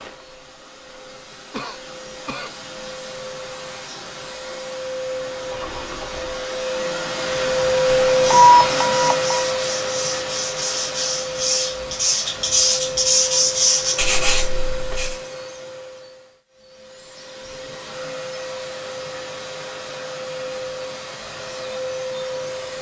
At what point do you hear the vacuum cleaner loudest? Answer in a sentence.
The loudest moment of the vacuum cleaner is at 8 seconds.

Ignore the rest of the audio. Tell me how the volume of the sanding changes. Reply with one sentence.
The volume of the sanding goes up.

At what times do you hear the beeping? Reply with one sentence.
You can hear the beeping from 8.3 to 9.4 s.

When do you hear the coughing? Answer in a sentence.
You can hear the coughing from 1.5 to 2.5 s.